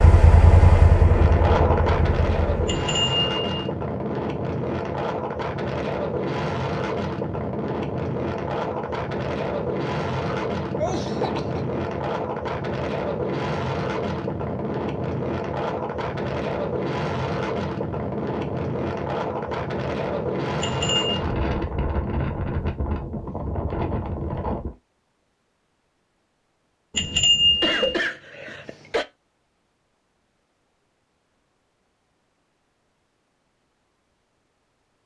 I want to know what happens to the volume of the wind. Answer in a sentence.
The loudness of the wind stays about the same.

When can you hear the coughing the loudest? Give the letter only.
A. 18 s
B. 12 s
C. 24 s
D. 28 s
D.